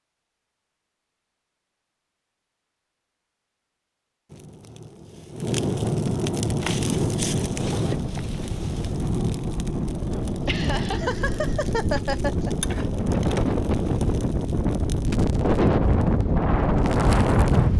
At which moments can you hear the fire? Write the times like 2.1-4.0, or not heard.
4.2-17.7.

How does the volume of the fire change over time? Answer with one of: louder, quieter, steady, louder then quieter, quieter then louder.
quieter.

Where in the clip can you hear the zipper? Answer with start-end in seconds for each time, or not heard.
not heard.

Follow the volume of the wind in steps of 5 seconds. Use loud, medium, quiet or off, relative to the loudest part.
off, quiet, medium, loud.